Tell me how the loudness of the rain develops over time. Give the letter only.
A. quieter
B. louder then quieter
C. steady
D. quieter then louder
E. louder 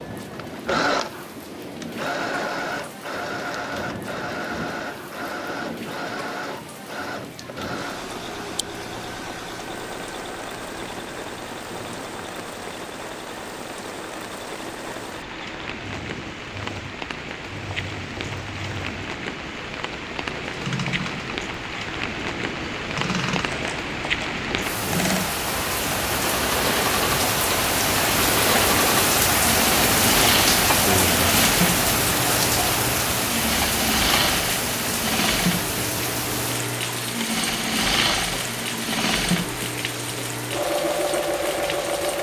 B.